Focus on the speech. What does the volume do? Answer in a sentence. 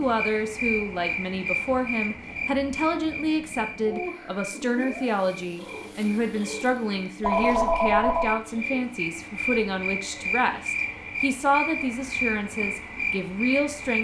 The volume of the speech stays about the same.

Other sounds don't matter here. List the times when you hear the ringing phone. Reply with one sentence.
The ringing phone can be heard from 7.2 to 8.3 s.